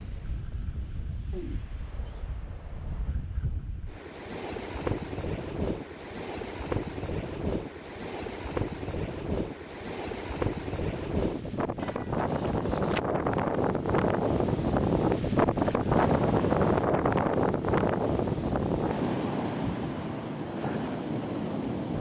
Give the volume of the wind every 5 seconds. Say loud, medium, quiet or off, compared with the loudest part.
quiet, medium, loud, loud, medium.